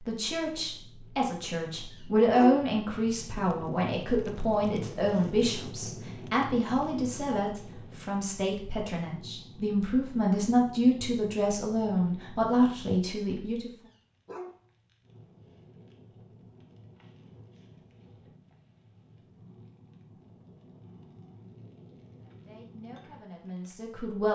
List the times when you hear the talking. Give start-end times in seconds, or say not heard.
0.1-13.7, 22.2-24.3.